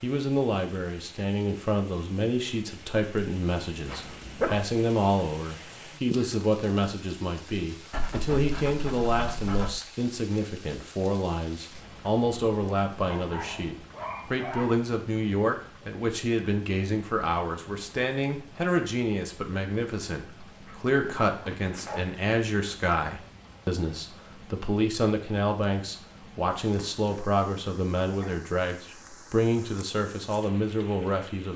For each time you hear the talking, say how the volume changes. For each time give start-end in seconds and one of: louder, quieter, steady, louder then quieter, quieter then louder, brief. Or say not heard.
0.0-31.5 steady.